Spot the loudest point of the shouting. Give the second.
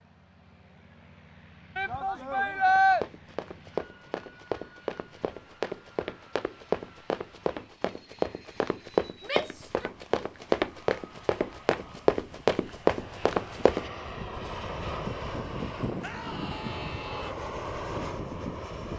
3 s.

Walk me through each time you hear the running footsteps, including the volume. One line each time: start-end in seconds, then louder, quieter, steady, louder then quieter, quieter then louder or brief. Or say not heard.
2.6-13.8 louder.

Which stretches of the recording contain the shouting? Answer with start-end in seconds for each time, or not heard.
1.8-3.0, 9.2-9.9, 16.0-17.4.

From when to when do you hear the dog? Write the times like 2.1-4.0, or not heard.
not heard.